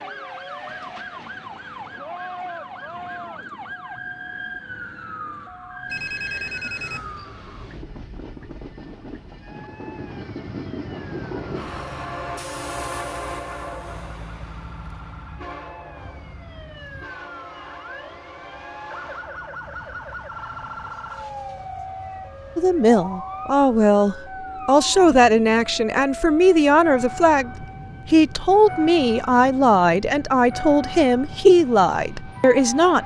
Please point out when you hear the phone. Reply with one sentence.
You can hear the phone from 5.9 to 7.2 s.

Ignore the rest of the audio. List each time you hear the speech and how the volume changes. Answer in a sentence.
You can hear the speech from 22.6 to 33.0 s, at a steady volume.